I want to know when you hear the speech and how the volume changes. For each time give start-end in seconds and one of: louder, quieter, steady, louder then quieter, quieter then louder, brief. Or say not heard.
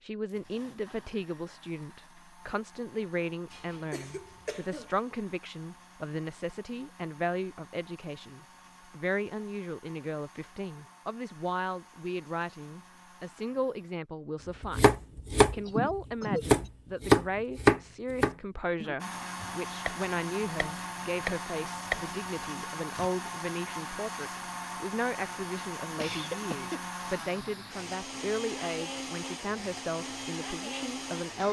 0.1-31.4 steady.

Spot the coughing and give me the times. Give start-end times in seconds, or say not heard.
3.5-4.9, 15.7-16.7, 26.0-27.8.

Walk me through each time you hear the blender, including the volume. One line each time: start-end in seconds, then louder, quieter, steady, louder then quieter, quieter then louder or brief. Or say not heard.
0.2-14.0 steady
18.9-31.4 steady.